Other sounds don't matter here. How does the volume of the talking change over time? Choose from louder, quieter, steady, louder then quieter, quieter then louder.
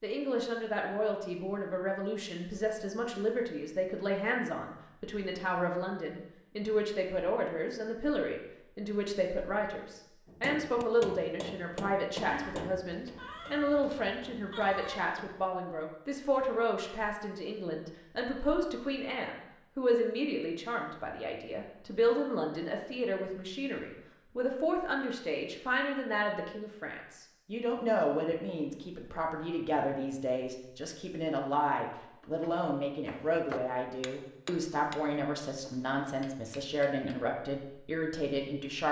steady.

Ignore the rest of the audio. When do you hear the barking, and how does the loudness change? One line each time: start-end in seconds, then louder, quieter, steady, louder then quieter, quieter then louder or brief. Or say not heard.
not heard.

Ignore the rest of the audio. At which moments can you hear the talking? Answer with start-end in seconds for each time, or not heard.
0.0-38.8.